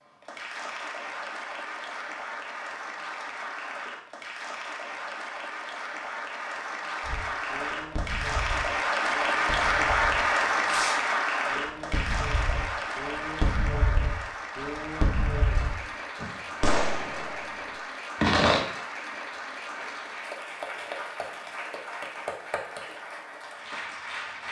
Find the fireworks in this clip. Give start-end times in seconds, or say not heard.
7.0-18.6.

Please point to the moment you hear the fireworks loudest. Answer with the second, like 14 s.
18 s.